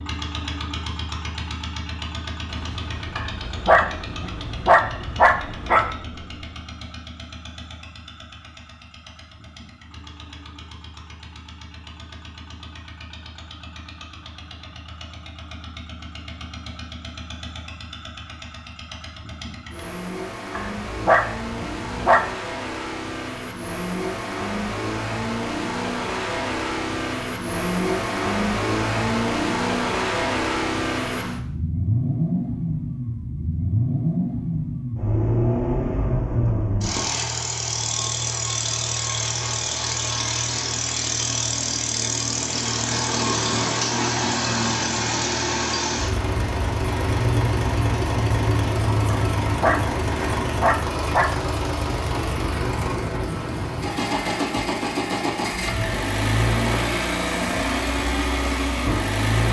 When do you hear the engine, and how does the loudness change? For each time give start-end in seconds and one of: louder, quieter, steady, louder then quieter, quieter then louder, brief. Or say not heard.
0.0-59.4 louder.